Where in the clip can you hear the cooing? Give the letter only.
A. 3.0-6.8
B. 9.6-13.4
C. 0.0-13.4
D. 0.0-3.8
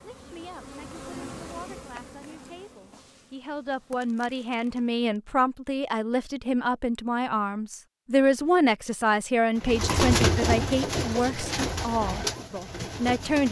B.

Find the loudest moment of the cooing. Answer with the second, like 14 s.
10 s.